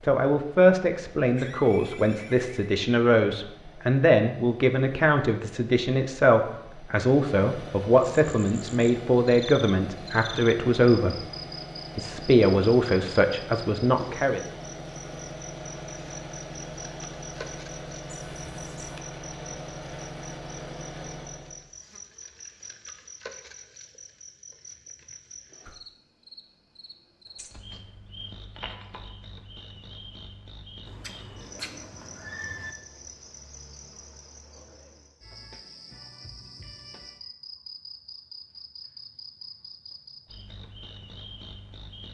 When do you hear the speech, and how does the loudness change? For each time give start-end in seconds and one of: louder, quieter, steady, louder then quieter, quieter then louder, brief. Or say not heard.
0.0-11.2 steady
11.9-14.4 brief.